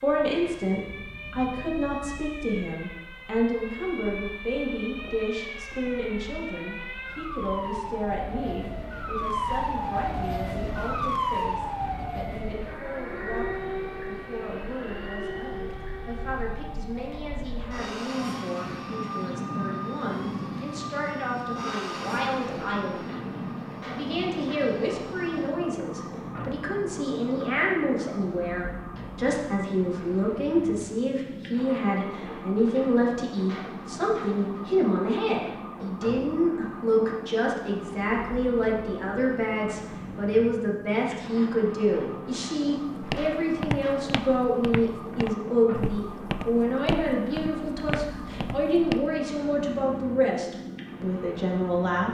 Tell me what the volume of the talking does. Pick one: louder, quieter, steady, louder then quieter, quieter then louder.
quieter then louder.